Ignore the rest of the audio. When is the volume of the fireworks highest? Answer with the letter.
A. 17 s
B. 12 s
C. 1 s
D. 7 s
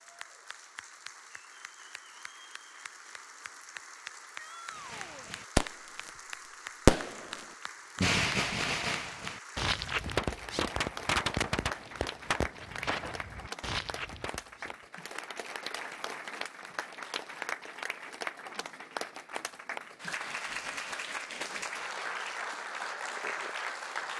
D.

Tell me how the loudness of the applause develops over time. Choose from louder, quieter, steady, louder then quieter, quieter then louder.
louder.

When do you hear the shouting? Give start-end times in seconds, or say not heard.
4.3-5.3.